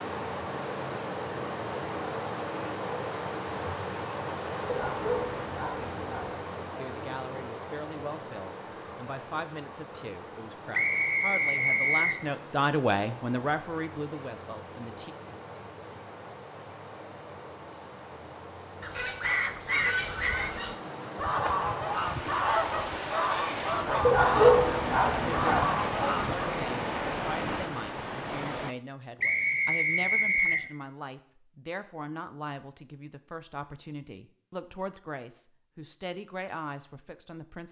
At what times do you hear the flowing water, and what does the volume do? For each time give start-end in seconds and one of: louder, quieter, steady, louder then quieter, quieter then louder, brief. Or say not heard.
0.0-28.8 quieter then louder.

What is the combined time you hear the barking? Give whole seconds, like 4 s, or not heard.
3 s.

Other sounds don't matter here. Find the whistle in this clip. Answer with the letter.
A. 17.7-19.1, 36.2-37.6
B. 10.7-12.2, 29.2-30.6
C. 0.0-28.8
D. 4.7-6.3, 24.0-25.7
B.